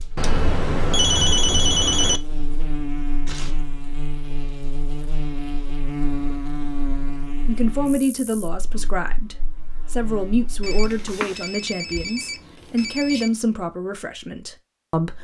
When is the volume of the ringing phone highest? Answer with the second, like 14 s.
1 s.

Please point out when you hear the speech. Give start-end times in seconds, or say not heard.
7.5-15.1.